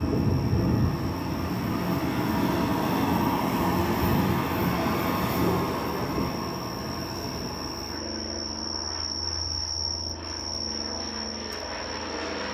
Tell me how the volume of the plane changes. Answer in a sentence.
The volume of the plane goes down.